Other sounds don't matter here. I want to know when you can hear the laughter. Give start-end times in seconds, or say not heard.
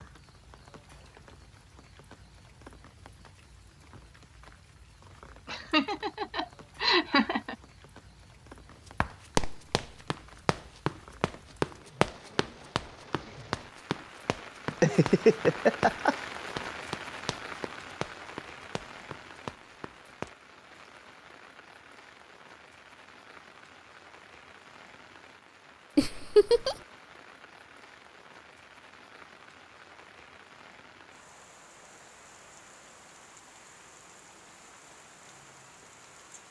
5.5-7.5, 14.7-16.1, 25.9-26.8.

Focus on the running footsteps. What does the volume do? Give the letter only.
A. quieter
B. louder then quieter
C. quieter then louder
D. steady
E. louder
A.